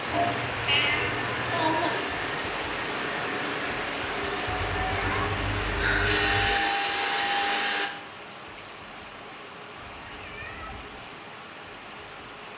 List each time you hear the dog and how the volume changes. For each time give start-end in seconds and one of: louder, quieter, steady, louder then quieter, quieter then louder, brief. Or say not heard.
not heard.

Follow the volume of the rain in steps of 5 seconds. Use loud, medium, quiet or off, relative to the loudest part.
loud, medium, medium.